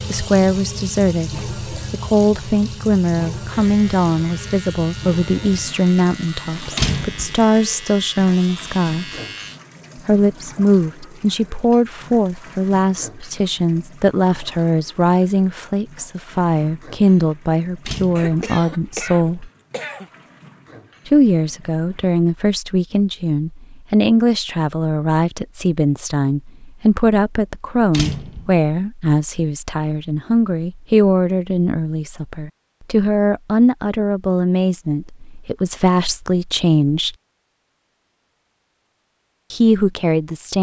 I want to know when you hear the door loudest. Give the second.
7 s.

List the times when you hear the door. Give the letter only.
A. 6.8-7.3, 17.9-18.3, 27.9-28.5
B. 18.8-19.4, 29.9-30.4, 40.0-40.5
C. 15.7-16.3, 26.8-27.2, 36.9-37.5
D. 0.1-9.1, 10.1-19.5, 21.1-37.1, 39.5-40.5
A.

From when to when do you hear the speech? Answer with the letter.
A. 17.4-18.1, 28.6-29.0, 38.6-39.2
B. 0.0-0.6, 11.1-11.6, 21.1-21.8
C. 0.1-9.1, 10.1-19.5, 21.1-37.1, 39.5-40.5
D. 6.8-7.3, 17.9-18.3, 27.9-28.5
C.